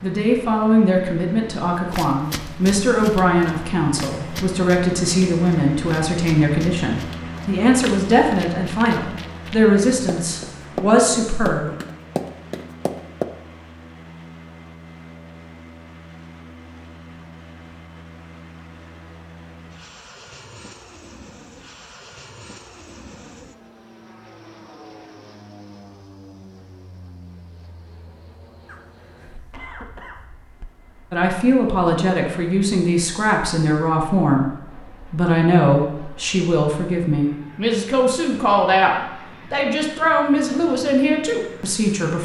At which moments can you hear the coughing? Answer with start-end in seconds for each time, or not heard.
28.6-30.2.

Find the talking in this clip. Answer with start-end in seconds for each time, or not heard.
0.0-11.8, 31.1-34.5, 35.1-42.2.